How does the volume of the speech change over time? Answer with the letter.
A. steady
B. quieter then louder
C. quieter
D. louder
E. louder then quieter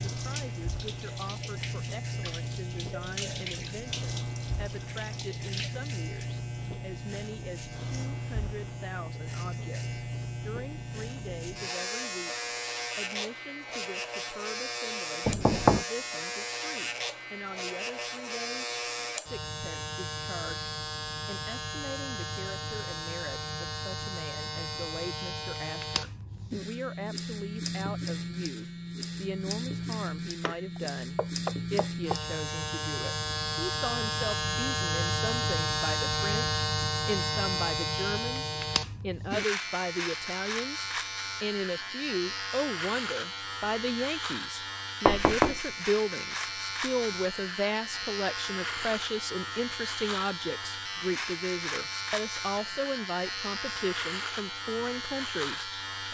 D.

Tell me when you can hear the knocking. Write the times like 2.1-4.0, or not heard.
15.2-15.8, 30.4-32.2, 45.0-45.6.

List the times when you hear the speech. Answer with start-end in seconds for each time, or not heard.
0.1-56.0.